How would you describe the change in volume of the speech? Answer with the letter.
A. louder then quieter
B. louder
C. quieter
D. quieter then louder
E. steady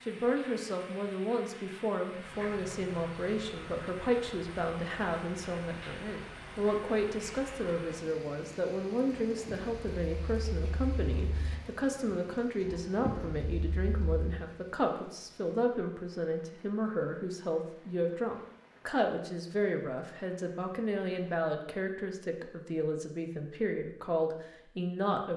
E.